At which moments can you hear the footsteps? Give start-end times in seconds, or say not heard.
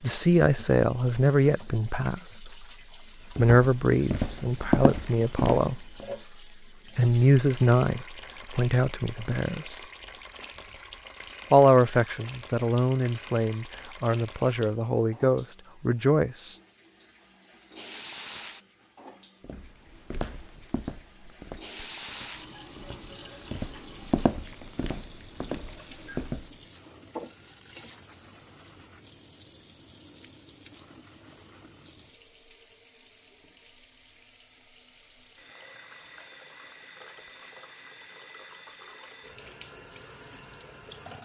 3.4-6.0, 19.4-26.5.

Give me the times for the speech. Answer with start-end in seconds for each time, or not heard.
0.0-2.6, 3.4-5.8, 7.0-9.8, 11.5-16.6.